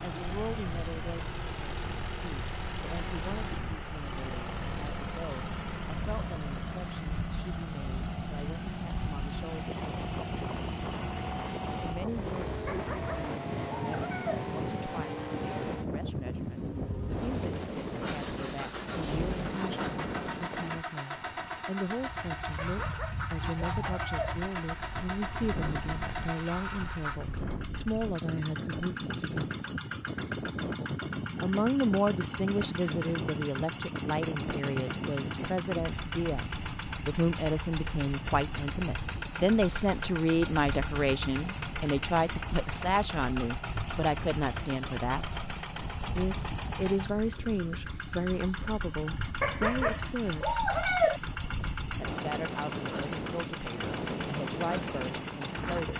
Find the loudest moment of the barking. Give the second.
51 s.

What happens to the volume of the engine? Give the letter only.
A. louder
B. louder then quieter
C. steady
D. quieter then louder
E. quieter
C.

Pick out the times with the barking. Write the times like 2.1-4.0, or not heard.
12.7-14.4, 22.6-24.4, 49.4-51.2.